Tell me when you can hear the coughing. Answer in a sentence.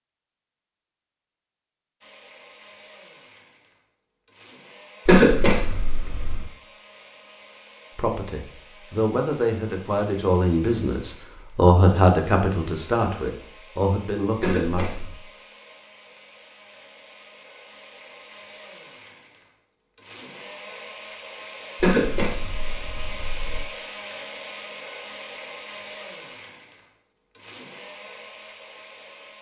The coughing can be heard from 5.0 to 6.5 s, from 14.4 to 15.2 s and from 21.8 to 23.6 s.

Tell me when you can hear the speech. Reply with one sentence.
You can hear the speech from 8.0 to 14.8 s.